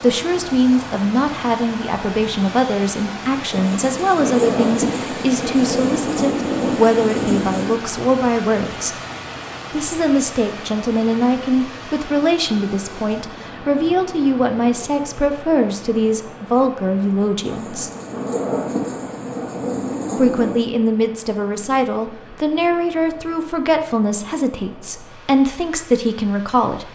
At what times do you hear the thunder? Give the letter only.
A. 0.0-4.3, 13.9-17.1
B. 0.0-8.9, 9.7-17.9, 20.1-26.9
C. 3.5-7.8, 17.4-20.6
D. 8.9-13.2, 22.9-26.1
C.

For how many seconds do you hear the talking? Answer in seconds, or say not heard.
24 s.